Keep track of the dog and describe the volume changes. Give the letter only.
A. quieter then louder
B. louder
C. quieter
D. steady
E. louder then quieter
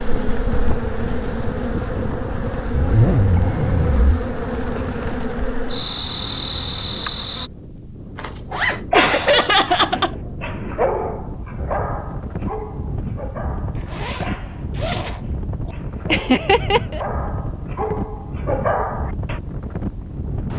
A.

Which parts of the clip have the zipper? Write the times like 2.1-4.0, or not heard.
2.7-4.2, 8.2-8.8, 13.8-15.8.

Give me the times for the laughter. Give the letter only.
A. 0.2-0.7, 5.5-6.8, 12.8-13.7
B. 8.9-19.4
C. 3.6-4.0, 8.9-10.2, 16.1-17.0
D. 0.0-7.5
C.